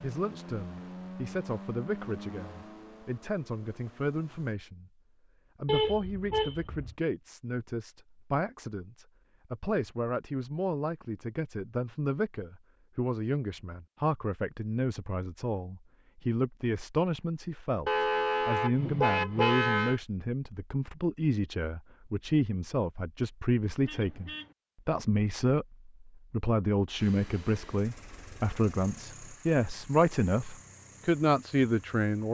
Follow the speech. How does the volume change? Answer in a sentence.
The loudness of the speech goes up.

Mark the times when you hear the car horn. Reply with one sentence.
The car horn can be heard from 5.7 to 7.0 s, from 17.9 to 20.0 s and from 23.8 to 24.6 s.